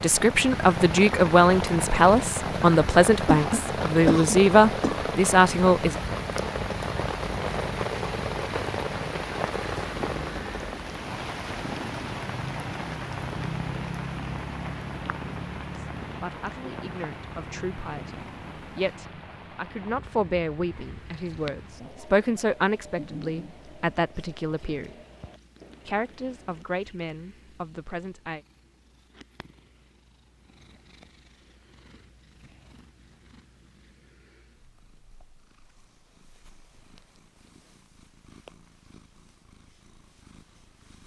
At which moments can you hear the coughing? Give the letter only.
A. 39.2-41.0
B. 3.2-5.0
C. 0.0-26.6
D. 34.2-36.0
B.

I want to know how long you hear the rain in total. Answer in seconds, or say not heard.
27 s.